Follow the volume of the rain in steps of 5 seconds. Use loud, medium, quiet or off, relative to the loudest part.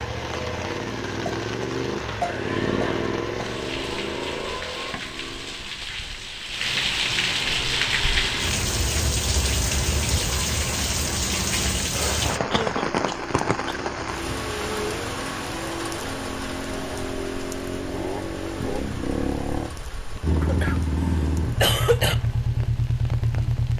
medium, loud, loud, medium, quiet.